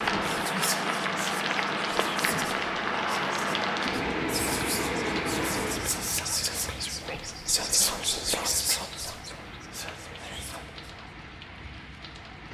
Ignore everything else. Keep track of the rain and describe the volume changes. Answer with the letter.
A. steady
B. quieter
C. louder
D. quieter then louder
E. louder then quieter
B.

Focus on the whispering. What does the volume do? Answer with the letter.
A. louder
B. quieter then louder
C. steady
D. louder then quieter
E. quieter
D.